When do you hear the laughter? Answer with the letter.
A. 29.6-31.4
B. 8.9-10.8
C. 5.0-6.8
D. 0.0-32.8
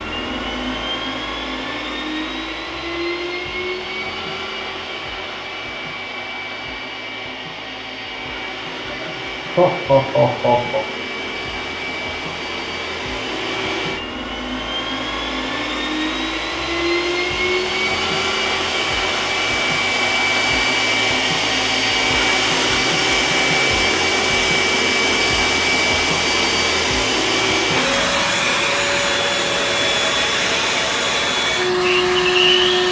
B.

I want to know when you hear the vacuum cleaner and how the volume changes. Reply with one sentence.
You can hear the vacuum cleaner from 0.0 to 32.8 s, getting louder.